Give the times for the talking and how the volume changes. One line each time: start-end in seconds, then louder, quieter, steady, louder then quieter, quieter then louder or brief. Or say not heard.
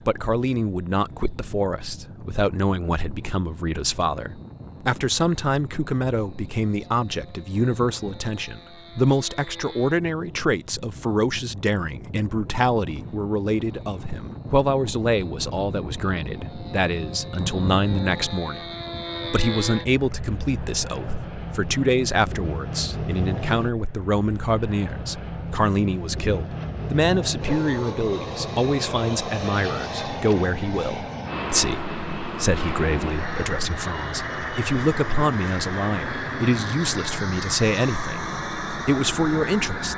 0.1-18.7 steady
19.3-39.9 steady.